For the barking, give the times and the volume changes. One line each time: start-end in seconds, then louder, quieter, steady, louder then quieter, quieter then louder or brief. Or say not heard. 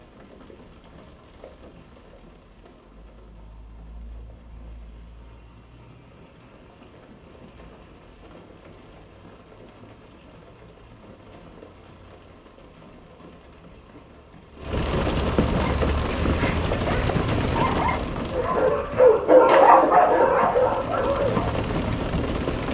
15.6-21.6 louder then quieter.